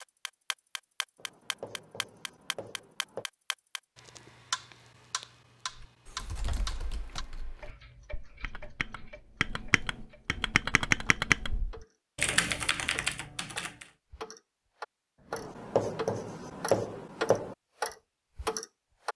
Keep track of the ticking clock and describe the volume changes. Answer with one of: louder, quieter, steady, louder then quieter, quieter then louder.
quieter then louder.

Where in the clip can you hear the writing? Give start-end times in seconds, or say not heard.
1.1-3.2, 15.3-17.6.